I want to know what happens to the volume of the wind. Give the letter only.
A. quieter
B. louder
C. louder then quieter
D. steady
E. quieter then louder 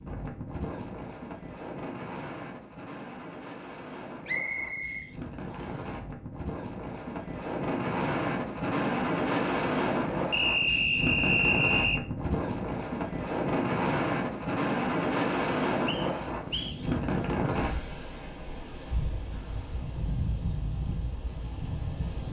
C.